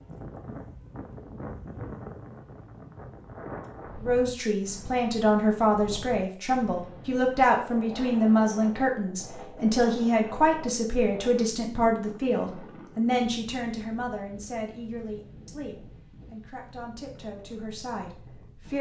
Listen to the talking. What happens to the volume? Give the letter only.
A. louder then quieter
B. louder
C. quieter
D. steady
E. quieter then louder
C.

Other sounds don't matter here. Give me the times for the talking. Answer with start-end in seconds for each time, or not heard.
4.0-18.7.